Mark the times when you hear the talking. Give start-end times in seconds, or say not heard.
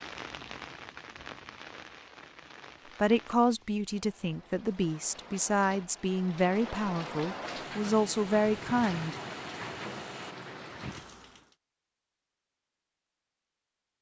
3.0-9.2.